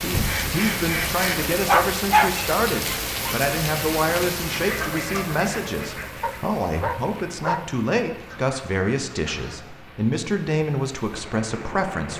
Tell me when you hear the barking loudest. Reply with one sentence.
The volume of the barking peaks at 2 seconds.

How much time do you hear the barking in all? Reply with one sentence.
The barking can be heard for 3 seconds in total.